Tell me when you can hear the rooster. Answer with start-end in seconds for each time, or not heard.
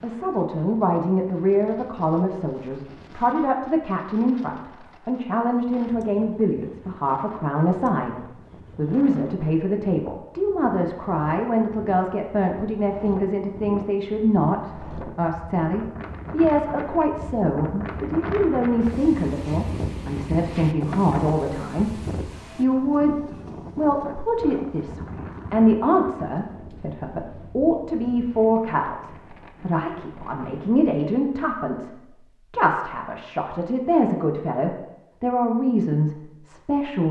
not heard.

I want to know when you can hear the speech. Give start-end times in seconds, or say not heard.
0.0-8.2, 8.8-23.1, 23.8-37.0.